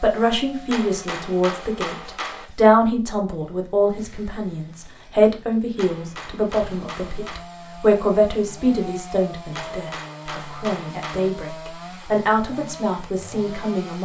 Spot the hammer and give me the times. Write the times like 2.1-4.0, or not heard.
0.7-2.5, 5.8-7.5, 9.5-11.3.